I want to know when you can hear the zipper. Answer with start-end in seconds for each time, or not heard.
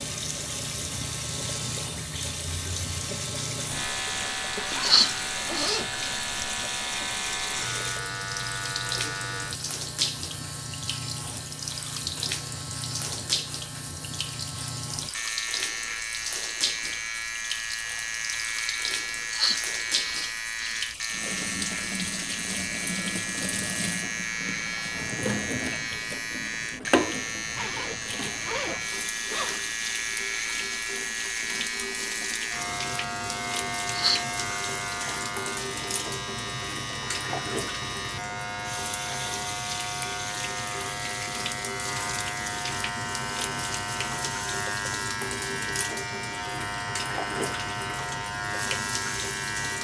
4.5-6.2, 27.6-29.6.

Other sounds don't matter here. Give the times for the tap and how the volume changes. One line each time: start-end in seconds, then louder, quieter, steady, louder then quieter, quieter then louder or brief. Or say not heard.
0.0-49.7 steady.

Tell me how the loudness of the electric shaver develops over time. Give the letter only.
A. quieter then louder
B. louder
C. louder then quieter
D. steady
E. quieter
D.